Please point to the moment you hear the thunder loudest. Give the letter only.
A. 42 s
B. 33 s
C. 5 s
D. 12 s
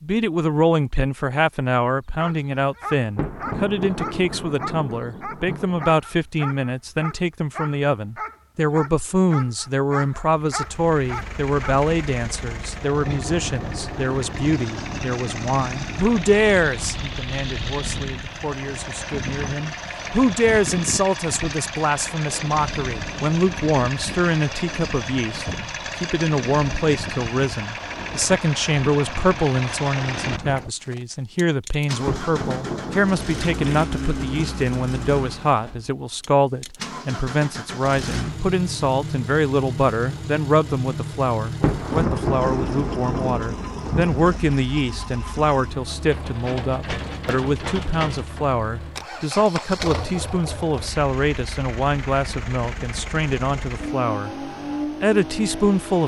A.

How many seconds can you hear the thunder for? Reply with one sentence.
You can hear the thunder for 8 seconds altogether.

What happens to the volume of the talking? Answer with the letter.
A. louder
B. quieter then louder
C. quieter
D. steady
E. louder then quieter
D.